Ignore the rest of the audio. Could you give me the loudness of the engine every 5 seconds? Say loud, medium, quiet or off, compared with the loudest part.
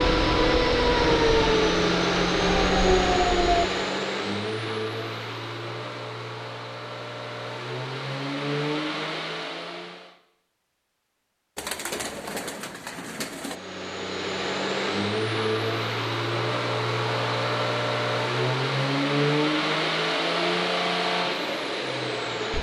loud, medium, medium, loud, loud.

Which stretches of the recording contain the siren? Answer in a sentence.
The siren can be heard from 0.0 to 3.7 s.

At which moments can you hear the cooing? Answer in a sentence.
You can hear the cooing from 11.6 to 13.6 s.